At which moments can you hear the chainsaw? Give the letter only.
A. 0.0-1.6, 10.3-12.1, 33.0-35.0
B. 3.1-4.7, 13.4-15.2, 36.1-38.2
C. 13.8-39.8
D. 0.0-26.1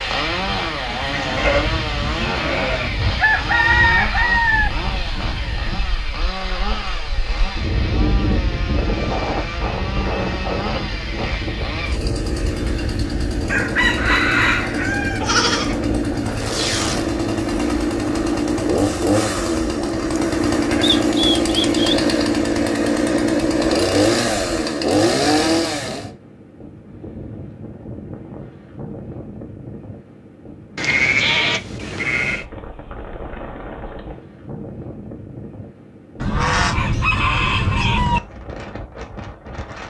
D.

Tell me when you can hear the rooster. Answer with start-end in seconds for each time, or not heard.
3.1-4.7, 13.4-15.2, 36.1-38.2.